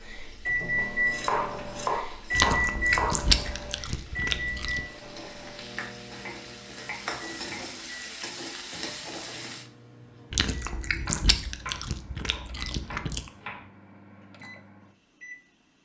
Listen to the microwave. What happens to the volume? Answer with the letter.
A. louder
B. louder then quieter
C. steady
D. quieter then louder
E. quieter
E.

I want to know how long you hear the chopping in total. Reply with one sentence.
The chopping can be heard for 7 seconds in total.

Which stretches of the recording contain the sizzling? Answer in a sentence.
The sizzling can be heard from 0.0 to 9.7 s.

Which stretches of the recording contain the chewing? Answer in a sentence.
The chewing can be heard from 2.3 to 4.8 s and from 10.3 to 13.3 s.